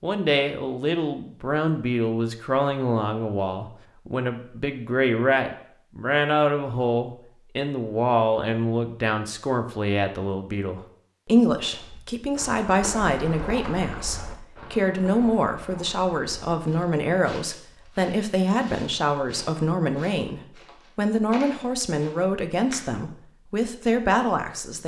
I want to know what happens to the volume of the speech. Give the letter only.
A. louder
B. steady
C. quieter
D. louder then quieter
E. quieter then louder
B.